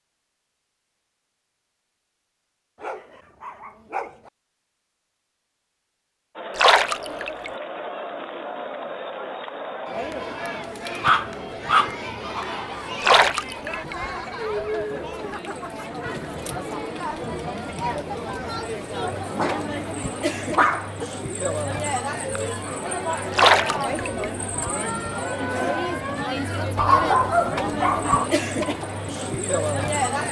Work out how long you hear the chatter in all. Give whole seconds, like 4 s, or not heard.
24 s.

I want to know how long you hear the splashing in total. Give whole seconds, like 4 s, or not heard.
3 s.